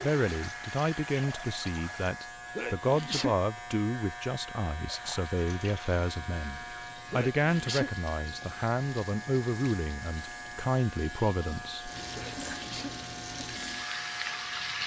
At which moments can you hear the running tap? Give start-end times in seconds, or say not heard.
0.0-2.1, 4.8-14.8.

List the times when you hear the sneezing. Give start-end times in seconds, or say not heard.
2.5-3.4, 7.1-7.9, 12.2-12.9.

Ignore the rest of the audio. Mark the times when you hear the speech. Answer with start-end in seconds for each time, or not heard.
0.0-11.9.